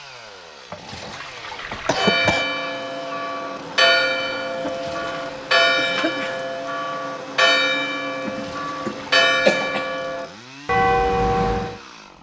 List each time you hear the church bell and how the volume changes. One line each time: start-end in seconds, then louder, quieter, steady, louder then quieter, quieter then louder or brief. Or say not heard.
1.9-11.8 steady.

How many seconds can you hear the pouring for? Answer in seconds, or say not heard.
3 s.